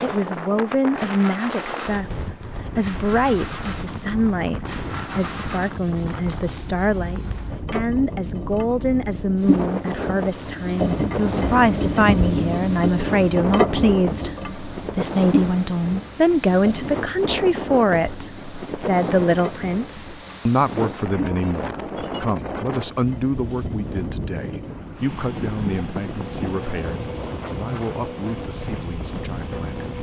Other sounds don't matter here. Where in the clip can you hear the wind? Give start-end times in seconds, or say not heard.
0.0-29.9.